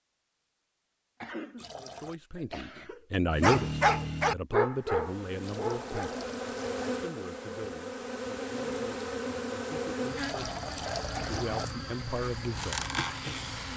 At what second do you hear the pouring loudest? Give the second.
11 s.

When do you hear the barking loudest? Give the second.
4 s.